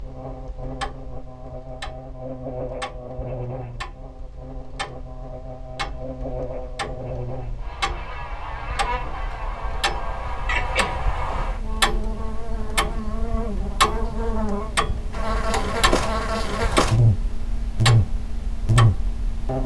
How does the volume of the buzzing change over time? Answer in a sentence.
The loudness of the buzzing goes up.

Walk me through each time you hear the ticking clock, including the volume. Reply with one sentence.
You can hear the ticking clock from 0.0 to 19.6 s, getting louder.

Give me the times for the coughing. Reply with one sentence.
You can hear the coughing from 10.4 to 11.4 s.